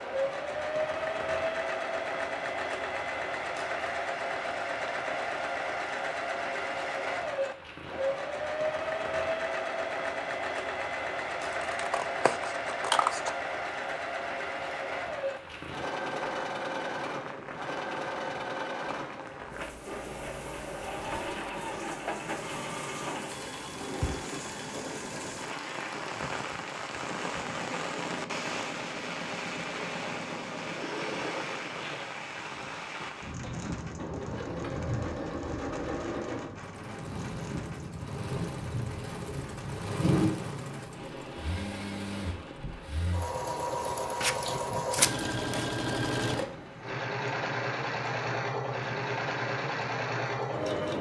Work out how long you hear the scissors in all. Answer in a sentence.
You can hear the scissors for 3 seconds altogether.